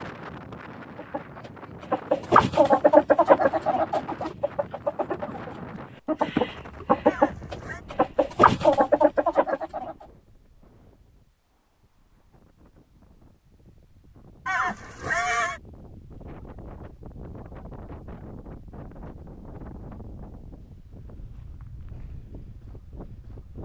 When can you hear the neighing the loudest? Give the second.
15 s.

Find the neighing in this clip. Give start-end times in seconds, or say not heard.
7.0-7.8, 14.4-15.6.